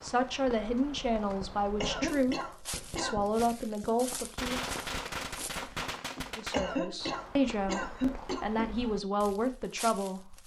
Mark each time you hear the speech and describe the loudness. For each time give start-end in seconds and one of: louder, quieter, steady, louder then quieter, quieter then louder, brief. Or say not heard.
0.0-4.7 steady
6.3-10.4 steady.